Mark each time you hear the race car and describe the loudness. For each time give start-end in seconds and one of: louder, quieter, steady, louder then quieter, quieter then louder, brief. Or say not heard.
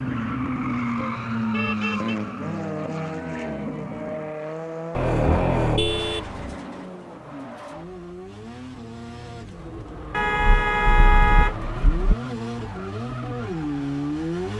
0.0-14.5 quieter then louder.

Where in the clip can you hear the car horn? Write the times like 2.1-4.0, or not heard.
0.9-2.2, 4.9-6.5, 10.1-12.2.